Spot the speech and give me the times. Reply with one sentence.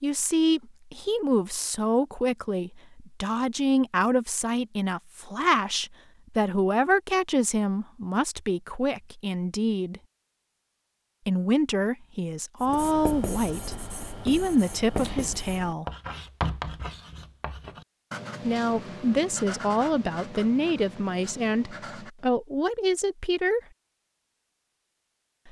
The speech can be heard from 0.0 to 10.0 s, from 11.2 to 15.8 s and from 18.4 to 23.6 s.